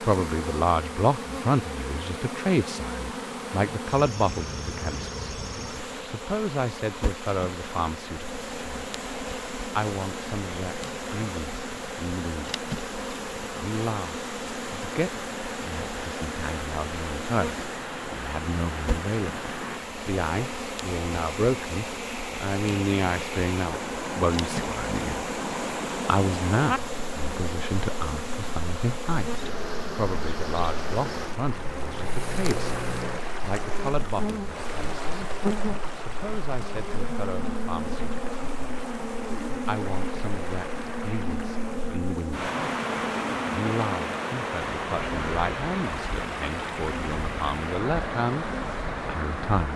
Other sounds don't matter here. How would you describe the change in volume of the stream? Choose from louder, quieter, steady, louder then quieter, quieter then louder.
louder.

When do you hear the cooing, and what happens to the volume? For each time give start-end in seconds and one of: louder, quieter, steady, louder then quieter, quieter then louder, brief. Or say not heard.
not heard.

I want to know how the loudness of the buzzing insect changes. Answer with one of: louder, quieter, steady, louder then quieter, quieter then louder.
steady.